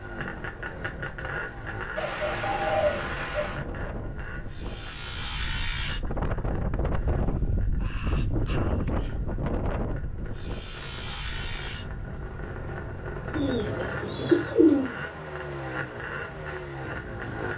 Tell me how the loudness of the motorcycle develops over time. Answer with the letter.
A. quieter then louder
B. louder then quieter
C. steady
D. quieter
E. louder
A.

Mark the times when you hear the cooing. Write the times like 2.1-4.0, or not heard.
1.9-3.6, 13.3-14.9.